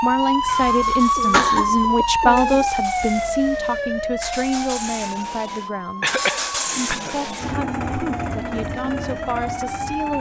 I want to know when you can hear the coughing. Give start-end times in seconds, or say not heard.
0.5-1.7, 6.0-7.2.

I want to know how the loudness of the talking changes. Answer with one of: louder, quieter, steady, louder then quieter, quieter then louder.
quieter.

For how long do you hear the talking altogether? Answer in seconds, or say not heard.
10 s.